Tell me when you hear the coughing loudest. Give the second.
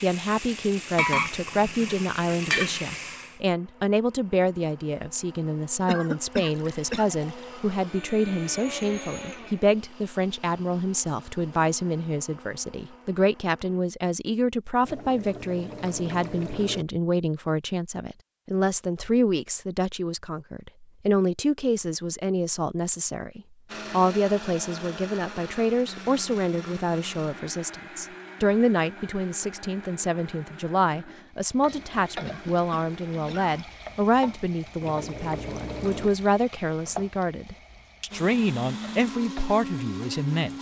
6 s.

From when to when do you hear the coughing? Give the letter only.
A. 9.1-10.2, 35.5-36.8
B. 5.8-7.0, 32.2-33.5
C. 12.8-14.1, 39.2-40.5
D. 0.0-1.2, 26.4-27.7
B.